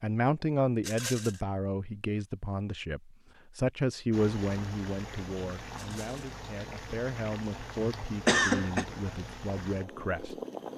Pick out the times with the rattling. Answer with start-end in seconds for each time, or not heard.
0.8-1.4, 5.8-6.2.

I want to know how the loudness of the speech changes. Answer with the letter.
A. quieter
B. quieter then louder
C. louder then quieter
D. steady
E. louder
A.